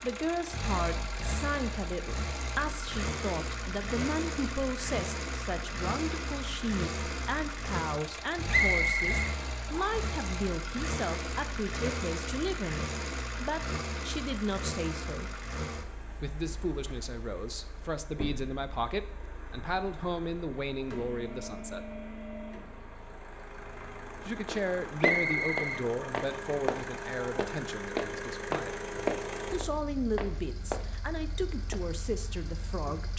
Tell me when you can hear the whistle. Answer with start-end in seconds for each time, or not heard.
8.5-10.1, 25.0-25.9.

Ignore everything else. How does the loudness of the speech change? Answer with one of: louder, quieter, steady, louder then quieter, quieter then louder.
steady.